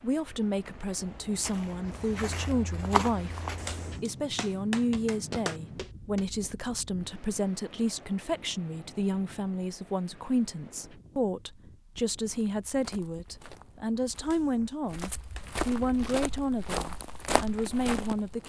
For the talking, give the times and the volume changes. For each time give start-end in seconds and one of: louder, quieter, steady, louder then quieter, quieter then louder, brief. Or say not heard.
0.0-18.4 steady.